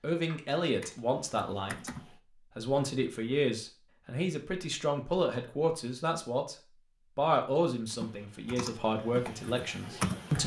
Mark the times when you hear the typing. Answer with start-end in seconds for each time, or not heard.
0.2-2.0, 7.9-10.4.